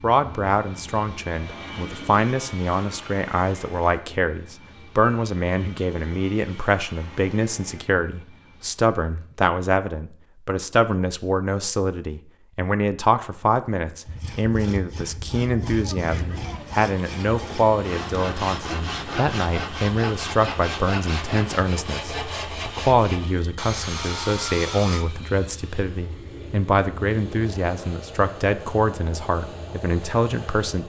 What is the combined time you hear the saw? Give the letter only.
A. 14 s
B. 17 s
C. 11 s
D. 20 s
C.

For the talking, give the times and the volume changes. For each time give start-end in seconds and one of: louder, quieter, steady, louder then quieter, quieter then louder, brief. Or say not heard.
0.0-30.8 steady.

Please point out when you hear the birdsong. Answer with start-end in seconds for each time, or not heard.
not heard.